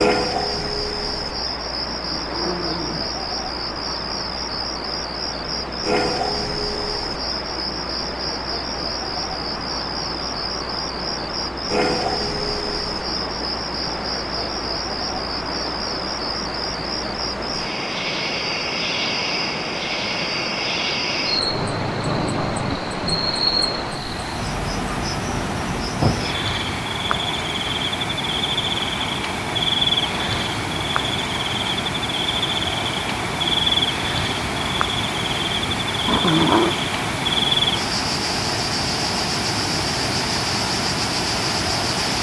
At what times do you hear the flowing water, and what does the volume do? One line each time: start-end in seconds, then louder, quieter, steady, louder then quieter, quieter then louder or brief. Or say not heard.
0.1-42.1 louder.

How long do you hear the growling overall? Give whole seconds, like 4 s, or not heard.
4 s.